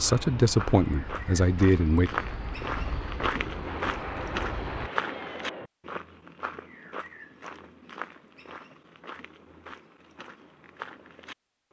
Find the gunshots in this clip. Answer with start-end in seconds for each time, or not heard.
3.6-5.7.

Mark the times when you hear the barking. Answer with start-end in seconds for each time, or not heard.
not heard.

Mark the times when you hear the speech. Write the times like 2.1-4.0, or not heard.
0.0-2.1.